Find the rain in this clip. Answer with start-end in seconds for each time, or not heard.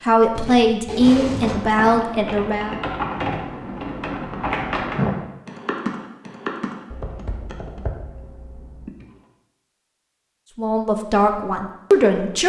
not heard.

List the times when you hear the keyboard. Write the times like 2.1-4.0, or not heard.
1.2-9.2.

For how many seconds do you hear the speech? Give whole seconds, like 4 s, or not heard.
5 s.